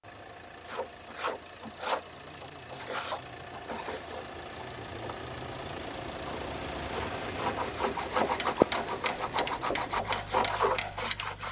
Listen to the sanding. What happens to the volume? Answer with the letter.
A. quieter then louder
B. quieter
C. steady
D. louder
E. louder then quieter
A.